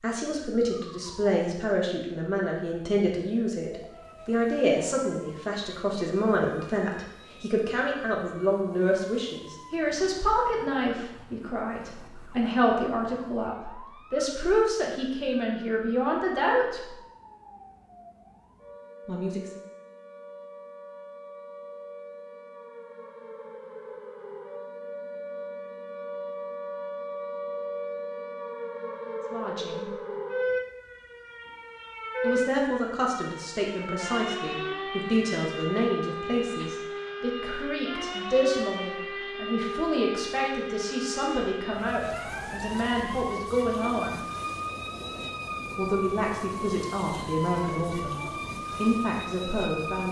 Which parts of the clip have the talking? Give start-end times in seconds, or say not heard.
0.0-16.9, 19.1-19.5, 29.3-29.9, 32.2-44.2, 45.8-50.0.